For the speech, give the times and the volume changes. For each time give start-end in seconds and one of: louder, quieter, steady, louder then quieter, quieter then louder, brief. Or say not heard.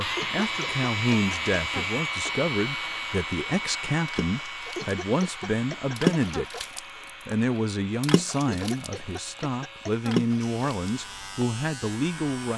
0.0-12.5 steady.